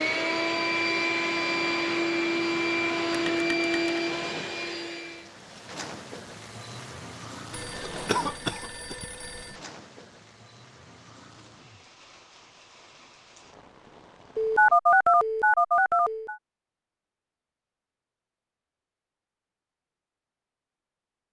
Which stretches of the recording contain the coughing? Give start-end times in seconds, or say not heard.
7.8-8.9.